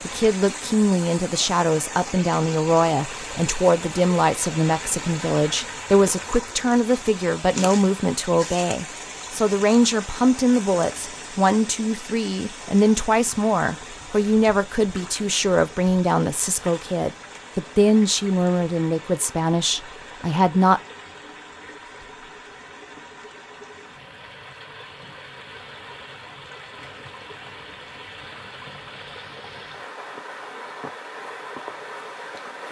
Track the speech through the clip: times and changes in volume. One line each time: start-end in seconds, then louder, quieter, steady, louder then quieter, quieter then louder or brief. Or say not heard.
0.1-20.8 steady.